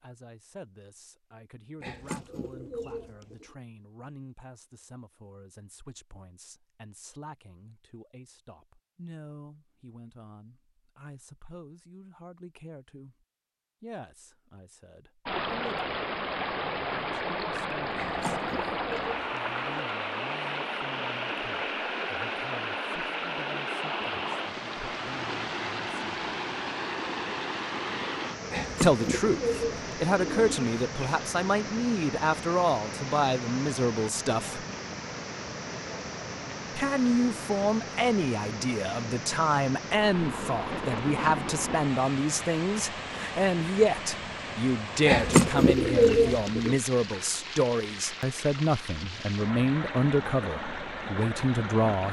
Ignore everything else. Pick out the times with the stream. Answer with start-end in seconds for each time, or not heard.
15.2-52.0.